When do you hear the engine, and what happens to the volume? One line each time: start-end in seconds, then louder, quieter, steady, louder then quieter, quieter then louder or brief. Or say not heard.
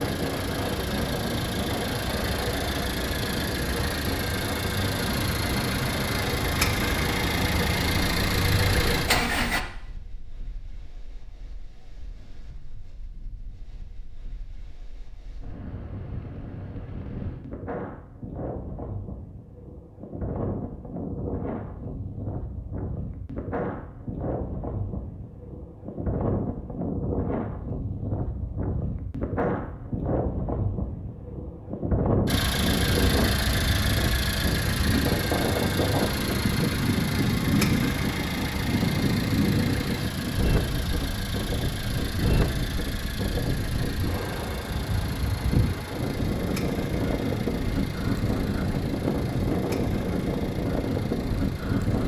0.0-9.6 louder
32.2-52.0 quieter.